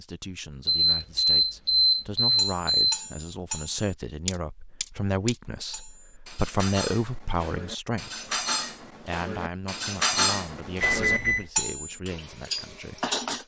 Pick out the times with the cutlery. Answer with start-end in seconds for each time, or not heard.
2.4-13.4.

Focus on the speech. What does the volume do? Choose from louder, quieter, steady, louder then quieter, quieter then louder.
louder then quieter.